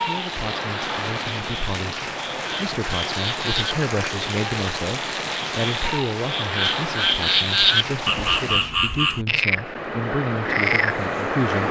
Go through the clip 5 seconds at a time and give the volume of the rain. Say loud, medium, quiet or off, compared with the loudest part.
loud, loud, off.